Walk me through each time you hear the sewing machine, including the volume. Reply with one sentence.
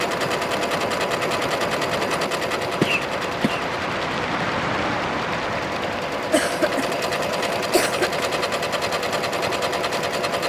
The sewing machine can be heard from 0.0 to 10.4 s, getting quieter then louder.